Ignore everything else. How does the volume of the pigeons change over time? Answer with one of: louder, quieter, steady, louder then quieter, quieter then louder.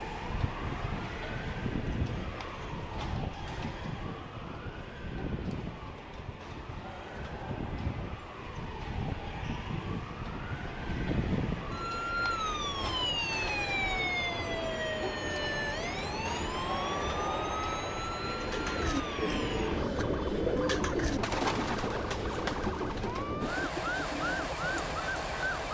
quieter.